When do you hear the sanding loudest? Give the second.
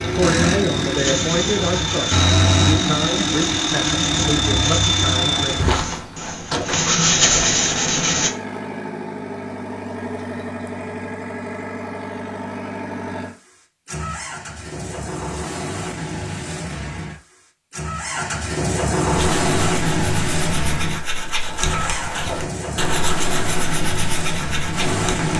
7 s.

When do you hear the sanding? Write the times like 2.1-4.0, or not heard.
0.9-8.3, 19.1-25.3.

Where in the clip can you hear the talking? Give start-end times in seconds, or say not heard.
0.0-5.7.